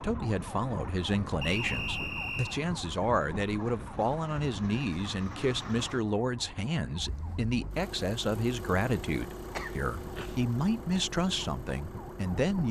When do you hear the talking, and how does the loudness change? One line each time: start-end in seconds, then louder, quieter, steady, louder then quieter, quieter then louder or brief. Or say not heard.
0.0-12.6 steady.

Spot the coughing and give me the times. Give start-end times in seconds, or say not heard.
9.5-10.4.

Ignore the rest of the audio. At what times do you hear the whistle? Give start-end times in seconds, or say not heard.
1.4-2.6.